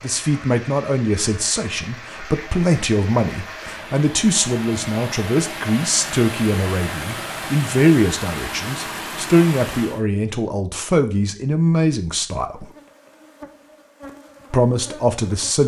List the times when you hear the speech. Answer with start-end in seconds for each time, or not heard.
0.0-12.7, 14.5-15.6.